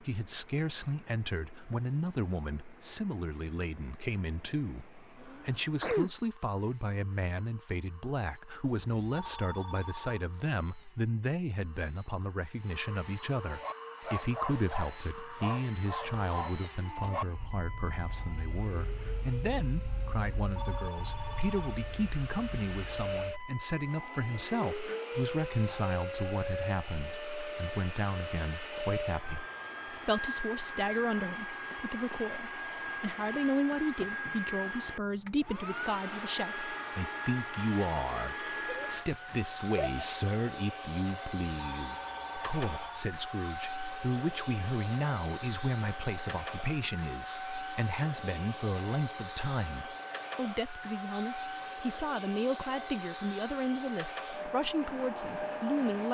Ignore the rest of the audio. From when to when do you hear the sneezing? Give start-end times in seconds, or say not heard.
5.2-6.1, 38.5-38.9, 39.8-40.2.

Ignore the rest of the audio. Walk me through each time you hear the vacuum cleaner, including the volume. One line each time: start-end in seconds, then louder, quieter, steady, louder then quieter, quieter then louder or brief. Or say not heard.
0.0-56.0 louder.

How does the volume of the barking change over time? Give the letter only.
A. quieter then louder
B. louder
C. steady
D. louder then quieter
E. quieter
E.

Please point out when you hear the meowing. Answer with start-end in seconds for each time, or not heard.
not heard.